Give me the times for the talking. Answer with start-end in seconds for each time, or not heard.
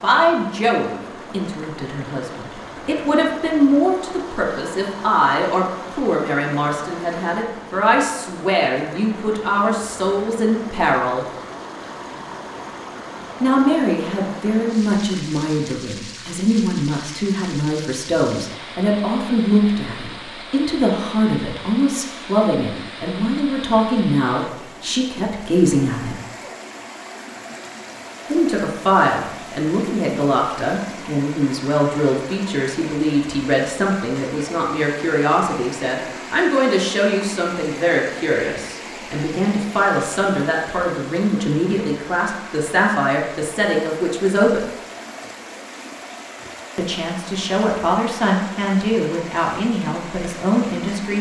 0.0-11.2, 13.4-26.1, 28.2-44.6, 46.8-51.1.